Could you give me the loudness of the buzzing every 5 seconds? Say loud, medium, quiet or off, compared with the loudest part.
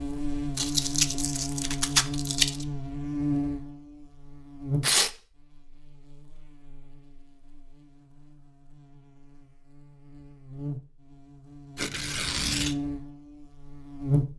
loud, quiet, loud.